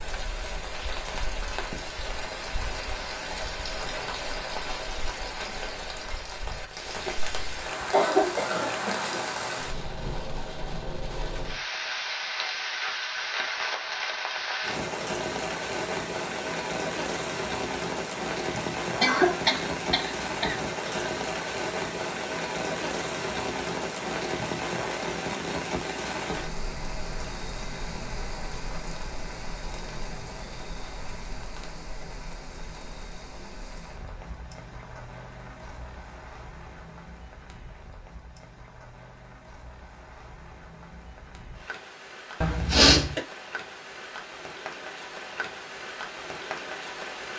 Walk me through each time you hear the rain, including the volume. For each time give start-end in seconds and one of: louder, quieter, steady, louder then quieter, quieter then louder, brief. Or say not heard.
0.0-47.3 quieter.